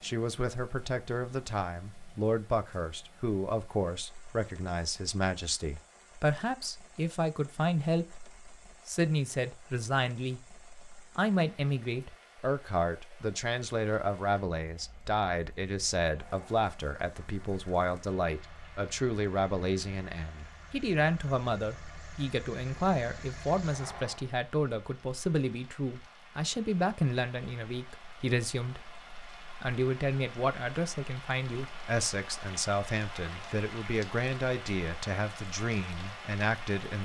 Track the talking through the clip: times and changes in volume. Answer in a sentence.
You can hear the talking from 0.0 to 37.0 s, at a steady volume.